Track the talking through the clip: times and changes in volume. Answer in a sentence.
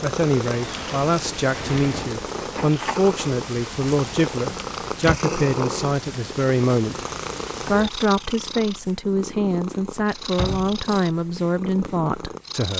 You can hear the talking from 0.0 to 7.0 s, at a steady volume; and from 7.7 to 12.7 s, at a steady volume.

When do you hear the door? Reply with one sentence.
You can hear the door from 0.5 to 2.2 s, from 4.5 to 5.2 s and from 10.3 to 10.8 s.